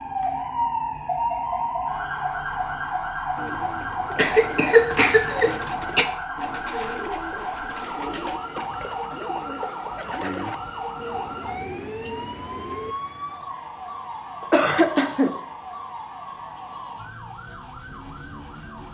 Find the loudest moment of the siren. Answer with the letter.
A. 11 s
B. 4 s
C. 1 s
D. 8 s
C.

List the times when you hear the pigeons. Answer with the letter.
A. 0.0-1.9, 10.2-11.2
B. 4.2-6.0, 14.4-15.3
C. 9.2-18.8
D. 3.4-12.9
D.